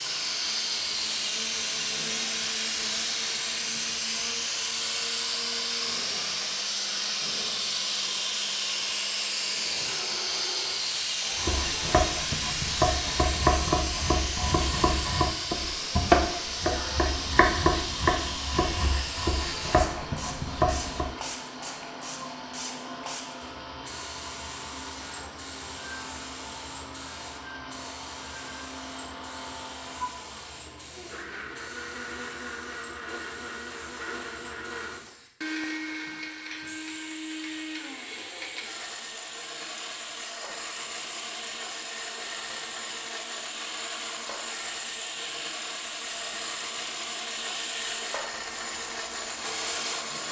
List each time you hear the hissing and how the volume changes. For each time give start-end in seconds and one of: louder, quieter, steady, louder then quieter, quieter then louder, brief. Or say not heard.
0.0-50.2 quieter then louder.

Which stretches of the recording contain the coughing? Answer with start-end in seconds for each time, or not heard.
not heard.